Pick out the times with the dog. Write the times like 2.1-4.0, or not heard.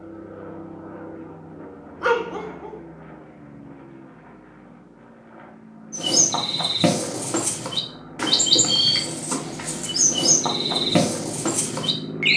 2.0-2.8.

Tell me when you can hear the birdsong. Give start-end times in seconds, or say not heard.
5.9-12.3.